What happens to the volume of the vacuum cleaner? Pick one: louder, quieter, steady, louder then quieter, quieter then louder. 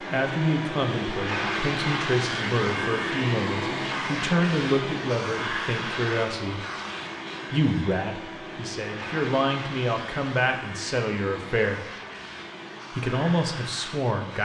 quieter.